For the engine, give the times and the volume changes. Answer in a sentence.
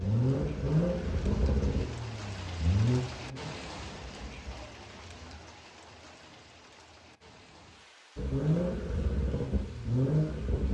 The engine can be heard from 0.0 to 5.3 s, getting quieter; and briefly from 8.2 to 10.6 s.